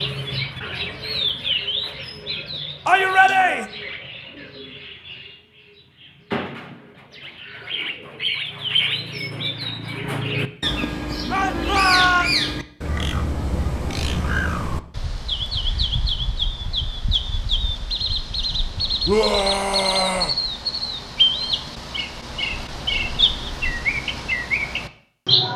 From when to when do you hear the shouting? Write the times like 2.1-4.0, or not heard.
2.9-3.6, 11.3-12.3, 19.1-20.4.